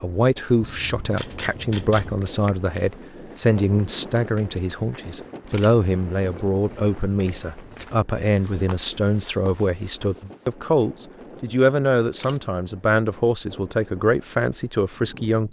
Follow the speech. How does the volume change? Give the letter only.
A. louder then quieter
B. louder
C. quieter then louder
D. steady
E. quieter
D.